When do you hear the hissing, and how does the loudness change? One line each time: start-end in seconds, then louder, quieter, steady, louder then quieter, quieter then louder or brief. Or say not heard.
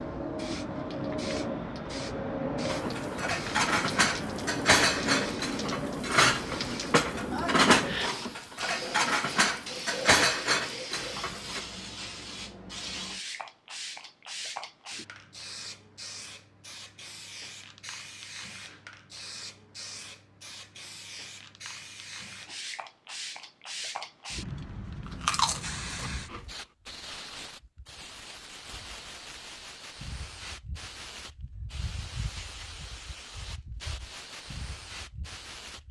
0.0-35.8 quieter.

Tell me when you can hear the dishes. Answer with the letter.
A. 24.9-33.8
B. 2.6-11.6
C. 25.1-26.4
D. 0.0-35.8
B.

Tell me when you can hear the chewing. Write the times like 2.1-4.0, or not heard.
25.1-26.4.